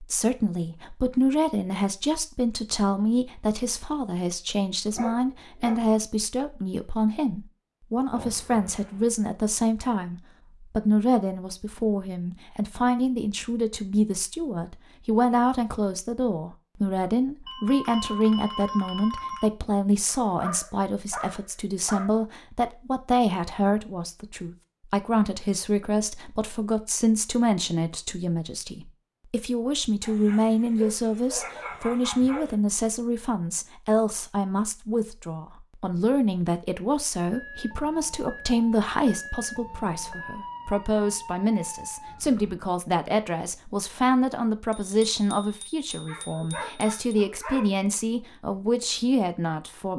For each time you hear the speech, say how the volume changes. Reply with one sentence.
The speech can be heard from 0.0 to 49.9 s, at a steady volume.